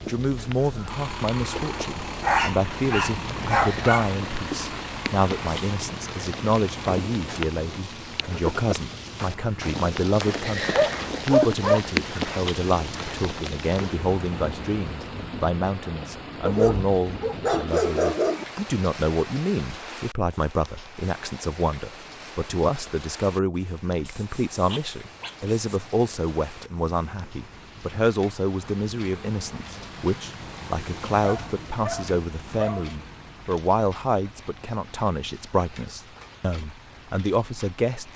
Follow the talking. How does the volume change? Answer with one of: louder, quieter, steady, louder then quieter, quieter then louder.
steady.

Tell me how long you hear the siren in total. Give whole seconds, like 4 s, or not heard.
not heard.